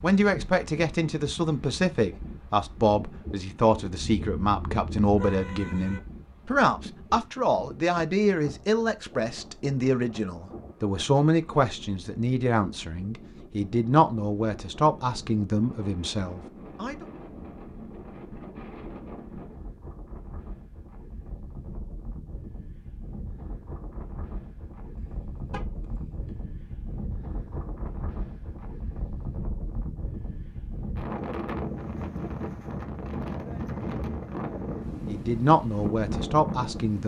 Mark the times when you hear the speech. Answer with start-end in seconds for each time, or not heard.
0.0-17.1, 35.0-37.0.